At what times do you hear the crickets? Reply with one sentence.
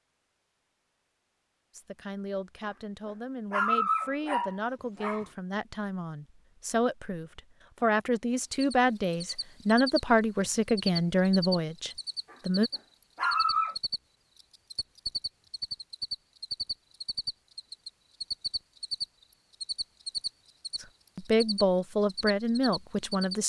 The crickets can be heard from 8.4 to 23.4 s.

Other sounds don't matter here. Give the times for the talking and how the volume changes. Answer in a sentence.
You can hear the talking from 1.8 to 12.7 s, getting louder; and briefly from 20.8 to 23.4 s.